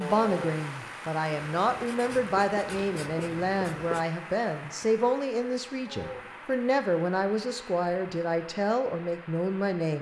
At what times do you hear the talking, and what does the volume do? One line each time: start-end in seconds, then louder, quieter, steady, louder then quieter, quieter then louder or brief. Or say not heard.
0.0-9.9 steady.